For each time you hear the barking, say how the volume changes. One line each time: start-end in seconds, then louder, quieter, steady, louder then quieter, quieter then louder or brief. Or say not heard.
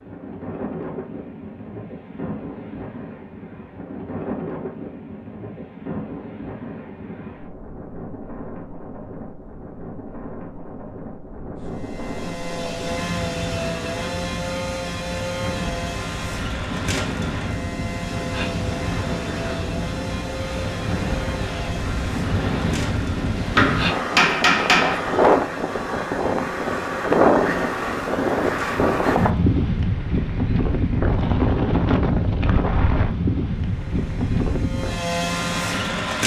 not heard.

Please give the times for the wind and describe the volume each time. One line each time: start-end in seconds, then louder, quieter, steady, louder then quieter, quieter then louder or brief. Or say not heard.
0.0-36.2 louder.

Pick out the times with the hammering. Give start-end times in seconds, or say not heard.
23.6-25.4.